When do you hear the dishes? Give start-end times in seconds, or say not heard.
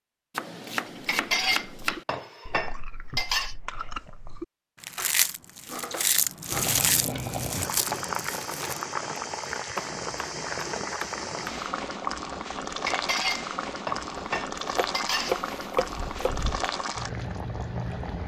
0.8-3.5, 12.8-15.4.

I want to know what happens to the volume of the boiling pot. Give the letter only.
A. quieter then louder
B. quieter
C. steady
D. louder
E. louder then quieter
C.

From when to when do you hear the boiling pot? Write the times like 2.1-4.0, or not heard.
6.5-18.2.